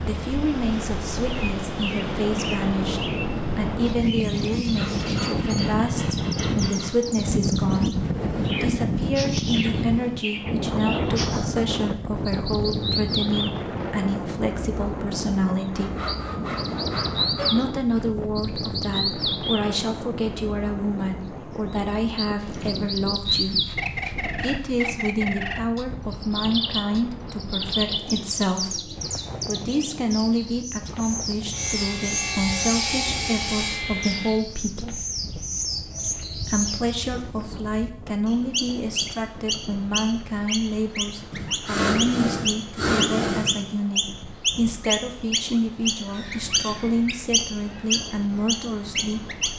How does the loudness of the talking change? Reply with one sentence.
The volume of the talking stays about the same.